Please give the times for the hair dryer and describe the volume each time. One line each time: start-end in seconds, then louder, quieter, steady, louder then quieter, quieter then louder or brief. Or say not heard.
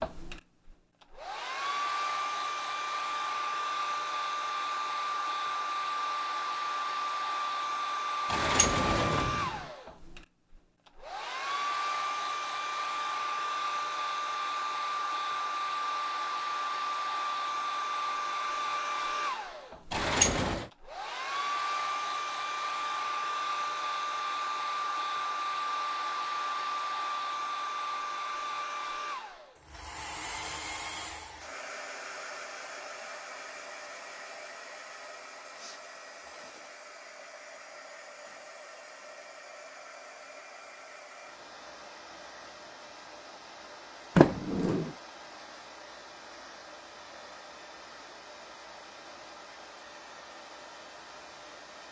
0.0-51.8 quieter.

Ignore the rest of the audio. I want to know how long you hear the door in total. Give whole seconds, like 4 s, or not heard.
3 s.